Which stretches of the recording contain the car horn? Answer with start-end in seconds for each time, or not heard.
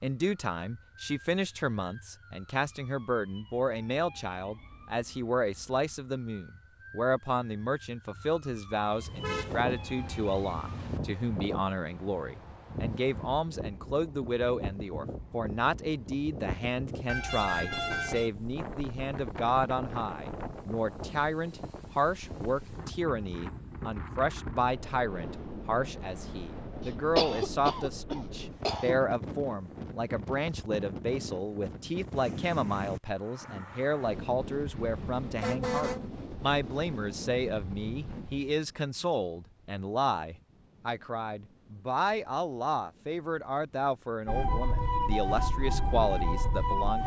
8.9-11.0, 17.1-18.3, 34.6-36.1.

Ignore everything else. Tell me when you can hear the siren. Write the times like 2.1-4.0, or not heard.
0.1-10.8, 44.2-47.0.